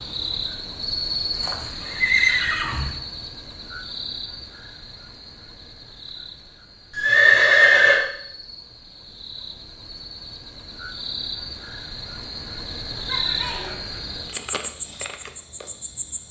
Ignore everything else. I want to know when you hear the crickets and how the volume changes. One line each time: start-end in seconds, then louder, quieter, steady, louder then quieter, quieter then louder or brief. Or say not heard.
0.0-16.2 quieter then louder.